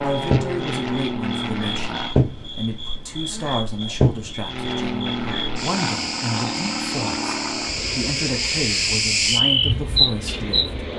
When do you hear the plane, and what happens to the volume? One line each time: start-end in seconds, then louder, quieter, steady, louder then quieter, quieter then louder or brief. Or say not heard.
0.0-2.2 brief
4.4-10.9 quieter.